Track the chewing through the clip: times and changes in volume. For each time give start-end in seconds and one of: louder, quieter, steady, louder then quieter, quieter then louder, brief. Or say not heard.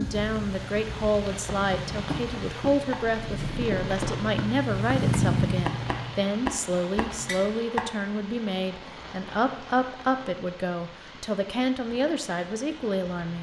not heard.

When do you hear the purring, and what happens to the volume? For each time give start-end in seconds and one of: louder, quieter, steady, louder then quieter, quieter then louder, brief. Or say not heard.
0.2-6.2 louder.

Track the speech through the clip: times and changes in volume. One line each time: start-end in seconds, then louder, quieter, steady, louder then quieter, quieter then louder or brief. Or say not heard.
0.0-13.3 steady.